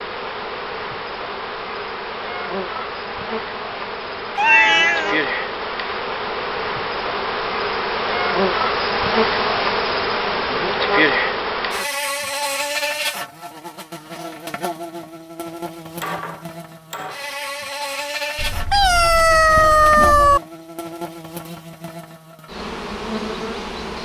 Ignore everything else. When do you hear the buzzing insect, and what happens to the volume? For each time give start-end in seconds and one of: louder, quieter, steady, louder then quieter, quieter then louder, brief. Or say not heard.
0.0-24.0 louder then quieter.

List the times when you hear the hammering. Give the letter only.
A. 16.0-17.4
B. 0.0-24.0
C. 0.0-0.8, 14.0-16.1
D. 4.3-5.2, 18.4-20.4
A.